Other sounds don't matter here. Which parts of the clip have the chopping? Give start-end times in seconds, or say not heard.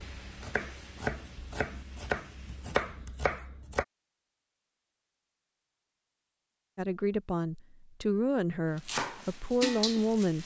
0.0-3.9, 8.8-10.4.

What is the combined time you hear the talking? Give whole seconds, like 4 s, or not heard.
4 s.